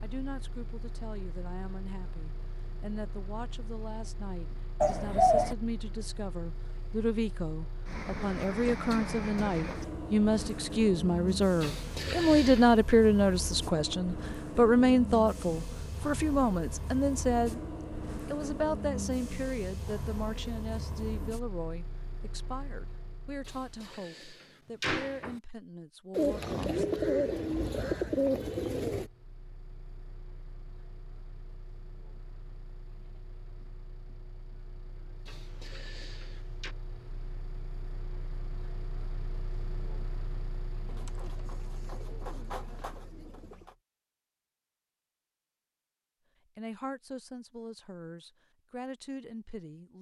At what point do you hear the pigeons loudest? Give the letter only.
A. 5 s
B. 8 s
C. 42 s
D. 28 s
A.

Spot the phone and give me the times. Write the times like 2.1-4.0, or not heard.
not heard.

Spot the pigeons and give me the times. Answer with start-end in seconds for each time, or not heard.
4.8-5.5, 26.1-29.1, 40.9-43.8.